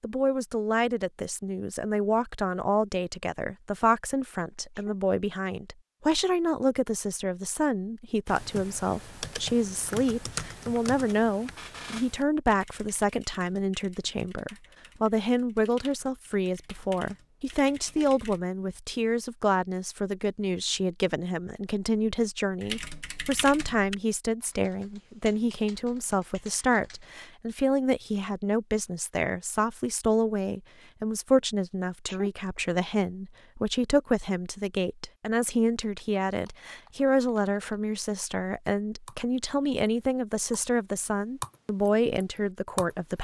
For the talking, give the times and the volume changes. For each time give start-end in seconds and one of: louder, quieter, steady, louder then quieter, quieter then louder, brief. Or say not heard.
0.0-43.1 steady.